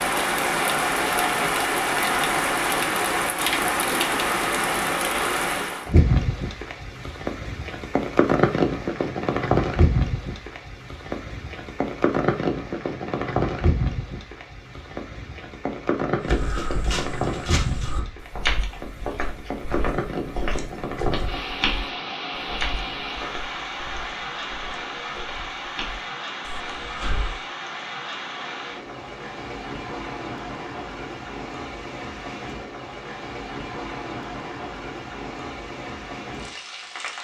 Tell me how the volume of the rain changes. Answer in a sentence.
The volume of the rain goes down.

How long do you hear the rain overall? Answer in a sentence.
The rain can be heard for 37 seconds in total.